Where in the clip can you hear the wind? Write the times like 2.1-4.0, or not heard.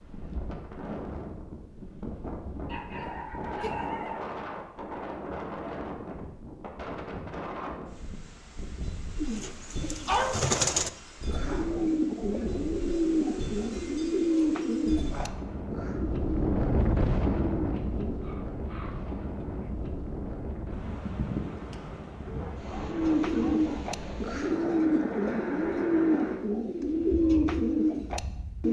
0.0-28.6.